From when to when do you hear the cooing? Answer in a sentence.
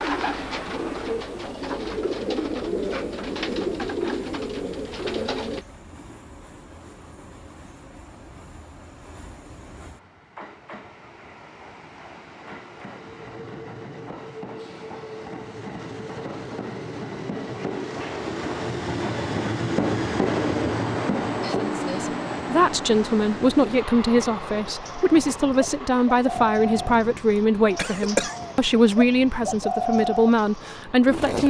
You can hear the cooing from 0.0 to 5.7 s and from 24.6 to 31.4 s.